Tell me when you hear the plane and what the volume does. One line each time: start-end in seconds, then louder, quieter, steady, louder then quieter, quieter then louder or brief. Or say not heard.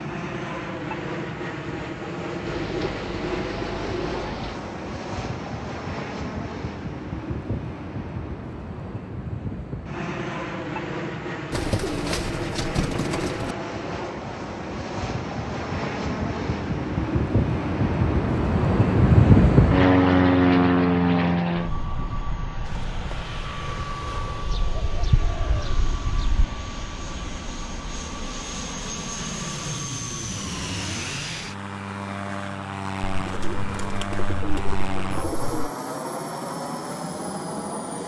0.0-38.0 louder then quieter.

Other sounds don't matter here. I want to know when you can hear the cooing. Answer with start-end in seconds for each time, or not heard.
2.5-4.6, 11.5-13.6, 24.4-26.4, 33.1-35.7.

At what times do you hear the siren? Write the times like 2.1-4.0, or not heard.
not heard.